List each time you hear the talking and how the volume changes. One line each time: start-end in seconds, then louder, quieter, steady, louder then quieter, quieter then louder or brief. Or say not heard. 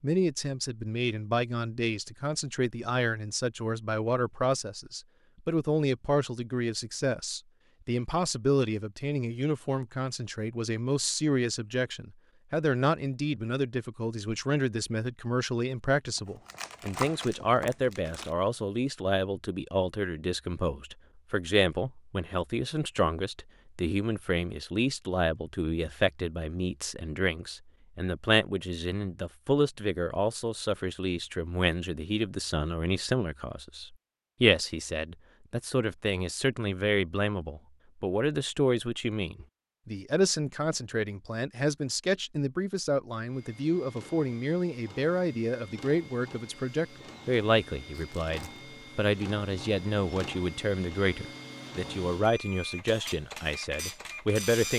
0.0-54.7 steady.